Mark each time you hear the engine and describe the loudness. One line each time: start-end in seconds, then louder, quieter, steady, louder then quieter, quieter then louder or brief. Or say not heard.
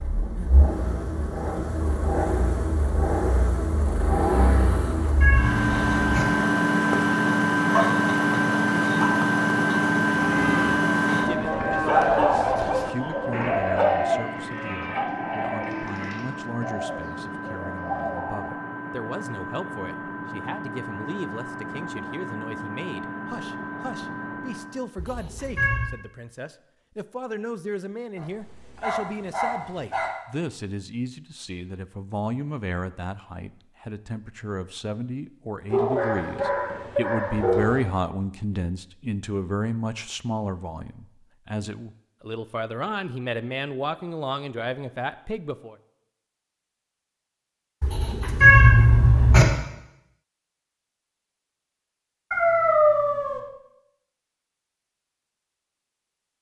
0.0-24.9 louder then quieter.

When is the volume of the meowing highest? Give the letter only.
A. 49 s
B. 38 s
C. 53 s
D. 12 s
A.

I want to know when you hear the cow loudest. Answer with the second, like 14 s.
12 s.